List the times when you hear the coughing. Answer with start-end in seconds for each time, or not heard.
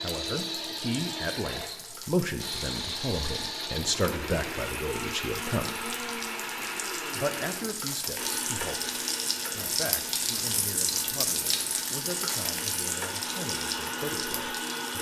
not heard.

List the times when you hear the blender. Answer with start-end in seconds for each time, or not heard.
0.0-14.9.